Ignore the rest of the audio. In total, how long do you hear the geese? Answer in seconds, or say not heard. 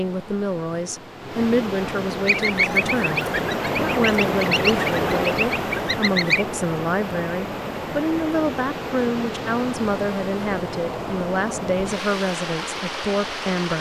4 s.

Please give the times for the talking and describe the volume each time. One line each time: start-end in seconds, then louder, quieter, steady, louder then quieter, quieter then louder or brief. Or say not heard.
0.0-13.7 steady.